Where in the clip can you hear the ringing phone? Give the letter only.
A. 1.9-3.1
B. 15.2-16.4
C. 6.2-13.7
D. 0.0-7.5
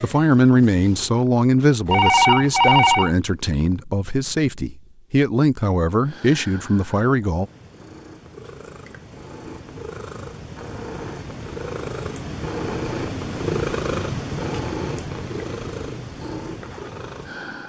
A.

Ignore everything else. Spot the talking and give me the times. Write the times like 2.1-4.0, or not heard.
0.0-7.5.